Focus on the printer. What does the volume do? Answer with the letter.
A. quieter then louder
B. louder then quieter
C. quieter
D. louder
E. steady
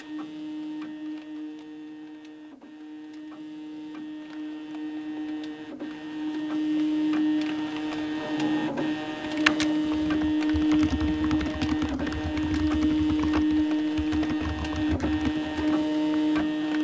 D.